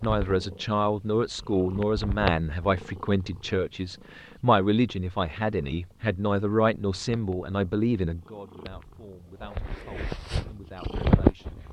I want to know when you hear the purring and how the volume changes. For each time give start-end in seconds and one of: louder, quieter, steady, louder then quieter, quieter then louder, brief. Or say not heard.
0.0-11.6 quieter then louder.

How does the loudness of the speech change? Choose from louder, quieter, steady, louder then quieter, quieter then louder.
quieter.